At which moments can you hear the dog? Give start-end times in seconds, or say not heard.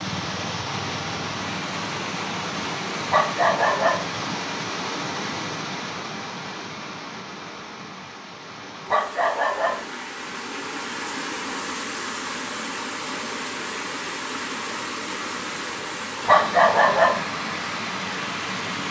3.1-4.0, 8.9-9.8, 16.2-17.2.